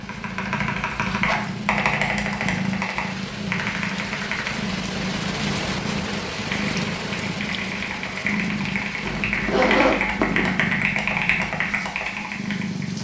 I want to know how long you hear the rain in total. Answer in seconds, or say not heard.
13 s.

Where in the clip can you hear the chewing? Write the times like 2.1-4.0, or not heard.
not heard.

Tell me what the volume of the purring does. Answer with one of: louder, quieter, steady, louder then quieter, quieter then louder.
steady.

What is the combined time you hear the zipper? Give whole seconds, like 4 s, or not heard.
2 s.